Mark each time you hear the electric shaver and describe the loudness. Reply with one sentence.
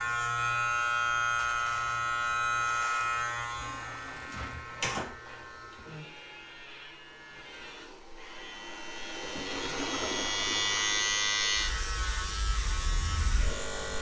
You can hear the electric shaver from 0.0 to 13.9 s, getting quieter then louder.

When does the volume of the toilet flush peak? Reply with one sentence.
The volume of the toilet flush peaks at 10 seconds.